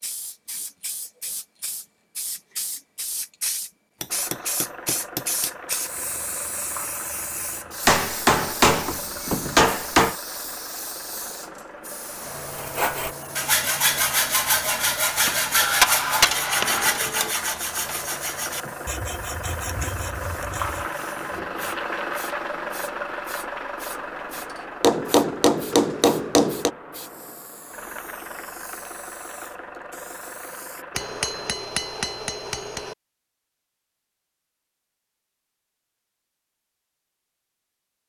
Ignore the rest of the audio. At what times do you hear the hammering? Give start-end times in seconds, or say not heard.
4.0-5.8, 7.8-10.2, 15.6-17.4, 24.8-26.7, 30.9-33.0.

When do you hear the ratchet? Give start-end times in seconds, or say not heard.
not heard.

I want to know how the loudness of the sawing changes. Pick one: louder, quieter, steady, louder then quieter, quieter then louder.
quieter.